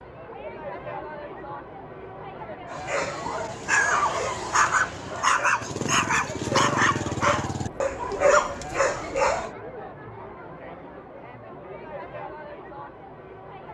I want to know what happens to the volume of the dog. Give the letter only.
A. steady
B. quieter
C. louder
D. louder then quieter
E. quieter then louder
A.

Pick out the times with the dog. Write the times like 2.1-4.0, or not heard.
2.7-9.5.